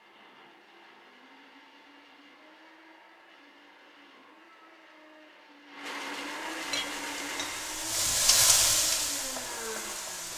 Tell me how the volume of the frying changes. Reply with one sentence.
The volume of the frying goes up, then down.